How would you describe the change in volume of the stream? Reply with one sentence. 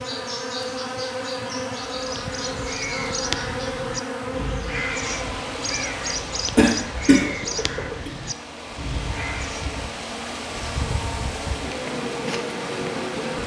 The loudness of the stream goes down, then up.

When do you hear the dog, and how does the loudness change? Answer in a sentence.
You can't hear the dog here.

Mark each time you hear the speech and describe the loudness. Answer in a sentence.
You can't hear the speech here.